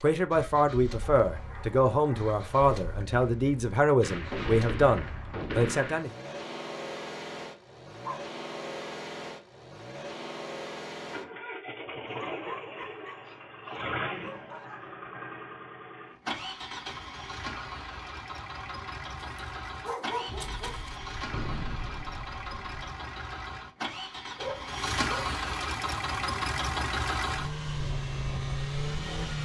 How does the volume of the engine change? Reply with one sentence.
The loudness of the engine goes up.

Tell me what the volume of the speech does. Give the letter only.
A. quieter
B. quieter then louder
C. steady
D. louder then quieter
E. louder
C.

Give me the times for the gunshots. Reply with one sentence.
The gunshots can be heard from 4.0 to 6.0 s and from 20.2 to 22.6 s.